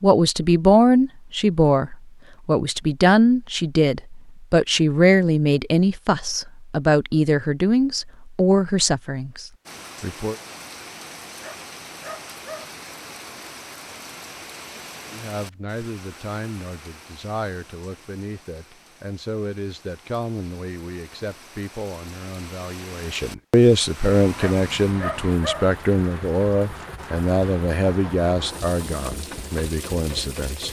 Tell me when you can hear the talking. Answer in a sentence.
The talking can be heard from 0.0 to 10.3 s and from 15.1 to 30.6 s.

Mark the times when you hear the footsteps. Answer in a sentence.
You can't hear the footsteps here.